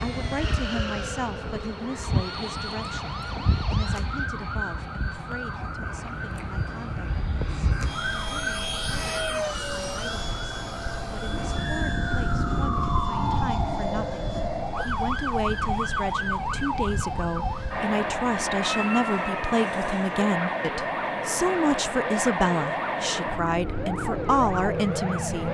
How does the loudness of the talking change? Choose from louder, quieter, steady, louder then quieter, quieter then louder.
quieter then louder.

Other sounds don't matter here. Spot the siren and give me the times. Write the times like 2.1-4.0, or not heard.
0.0-25.4.